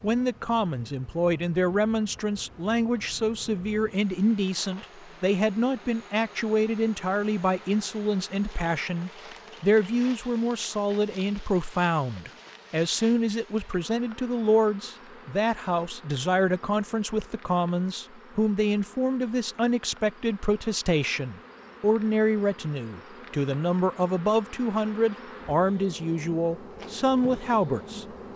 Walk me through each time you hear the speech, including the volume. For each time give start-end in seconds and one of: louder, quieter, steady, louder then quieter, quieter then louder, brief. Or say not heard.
0.0-28.3 steady.